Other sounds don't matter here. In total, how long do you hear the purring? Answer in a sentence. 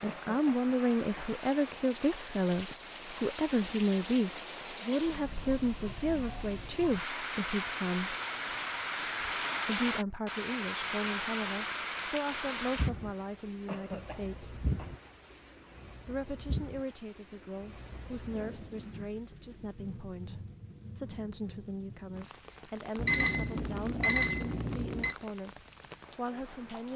The purring can't be heard in this clip.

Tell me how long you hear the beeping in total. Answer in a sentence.
You can hear the beeping for 2 seconds altogether.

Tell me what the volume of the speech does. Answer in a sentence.
The volume of the speech goes down.